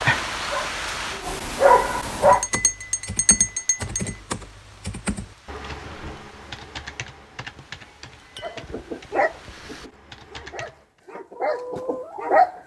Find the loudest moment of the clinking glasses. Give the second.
3 s.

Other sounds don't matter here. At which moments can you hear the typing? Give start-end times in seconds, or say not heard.
2.1-11.0.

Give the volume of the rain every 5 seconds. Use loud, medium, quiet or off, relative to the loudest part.
loud, quiet, off.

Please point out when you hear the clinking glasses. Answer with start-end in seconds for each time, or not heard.
2.3-4.2, 7.8-8.7.